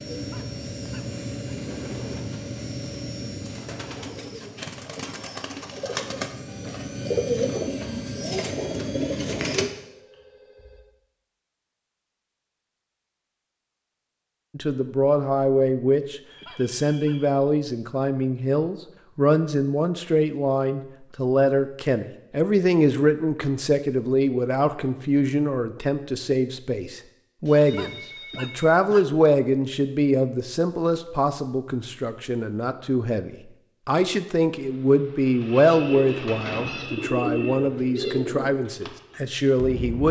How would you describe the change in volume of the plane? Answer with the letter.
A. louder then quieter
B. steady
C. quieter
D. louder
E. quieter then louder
E.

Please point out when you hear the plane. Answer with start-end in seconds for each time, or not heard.
0.0-9.7.